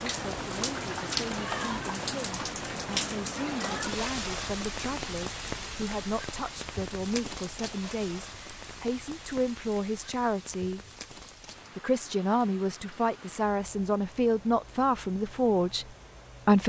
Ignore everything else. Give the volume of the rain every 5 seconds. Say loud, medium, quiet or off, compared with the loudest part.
loud, medium, quiet, quiet.